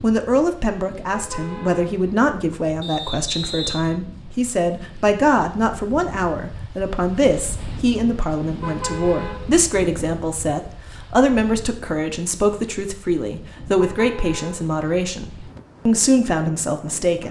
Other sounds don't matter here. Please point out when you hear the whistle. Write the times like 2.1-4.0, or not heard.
2.8-3.9.